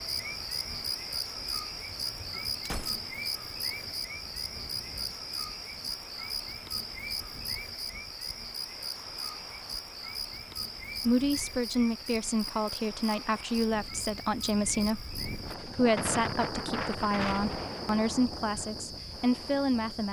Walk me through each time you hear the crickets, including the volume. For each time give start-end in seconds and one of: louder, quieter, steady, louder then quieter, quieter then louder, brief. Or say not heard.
0.0-20.0 quieter.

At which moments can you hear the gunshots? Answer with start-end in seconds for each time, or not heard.
2.6-3.3.